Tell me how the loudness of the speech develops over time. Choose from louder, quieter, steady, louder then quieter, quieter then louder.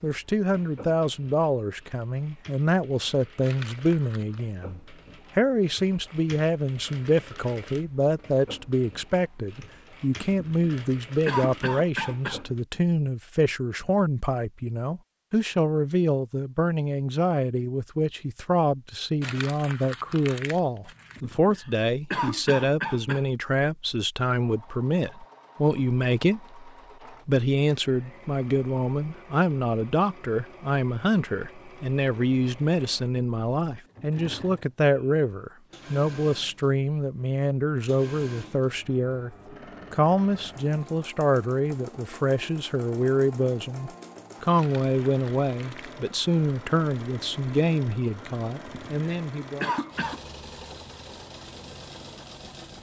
steady.